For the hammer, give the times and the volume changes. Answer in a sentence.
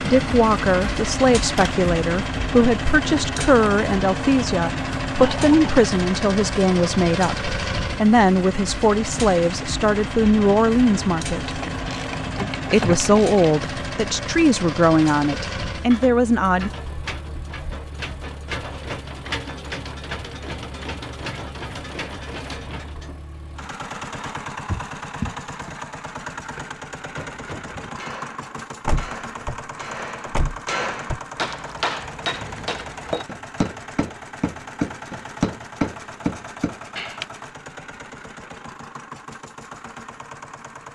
The hammer can be heard from 26.4 to 37.2 s, getting louder.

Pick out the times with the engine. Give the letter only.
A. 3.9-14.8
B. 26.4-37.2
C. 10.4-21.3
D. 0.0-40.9
D.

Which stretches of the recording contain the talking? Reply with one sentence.
The talking can be heard from 0.0 to 11.6 s and from 12.7 to 16.7 s.